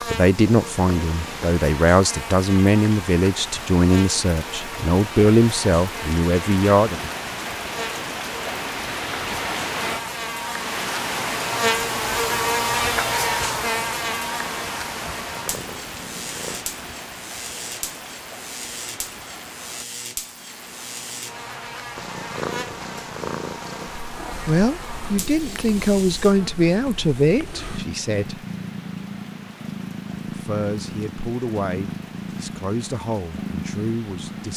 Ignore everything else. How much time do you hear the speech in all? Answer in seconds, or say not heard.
15 s.